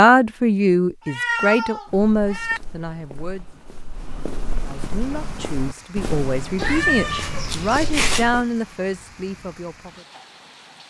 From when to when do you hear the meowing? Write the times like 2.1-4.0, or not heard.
1.1-2.6, 6.5-8.3.